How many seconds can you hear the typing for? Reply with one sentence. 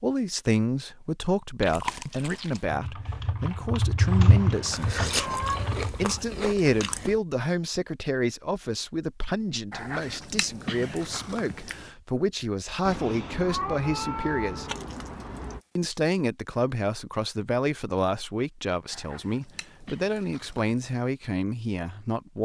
The typing can be heard for 4 seconds in total.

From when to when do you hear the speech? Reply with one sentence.
You can hear the speech from 0.0 to 5.4 s, from 6.0 to 14.7 s and from 15.8 to 22.4 s.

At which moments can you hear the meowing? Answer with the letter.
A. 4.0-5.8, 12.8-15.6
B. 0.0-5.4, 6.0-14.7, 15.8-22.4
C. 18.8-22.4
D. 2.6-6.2
A.